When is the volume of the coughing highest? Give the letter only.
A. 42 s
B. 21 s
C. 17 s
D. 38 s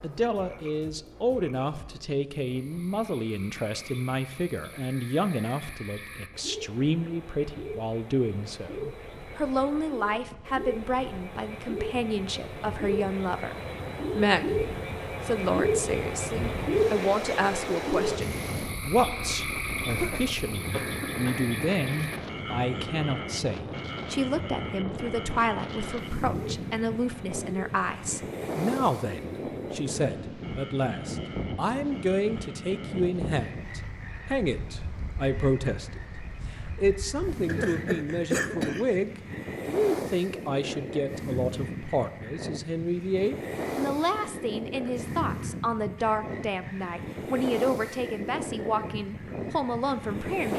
D.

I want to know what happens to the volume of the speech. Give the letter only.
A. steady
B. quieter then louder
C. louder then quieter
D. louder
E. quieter
A.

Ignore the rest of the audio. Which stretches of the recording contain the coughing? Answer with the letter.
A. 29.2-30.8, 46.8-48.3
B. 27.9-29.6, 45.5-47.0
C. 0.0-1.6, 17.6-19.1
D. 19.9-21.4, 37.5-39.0
D.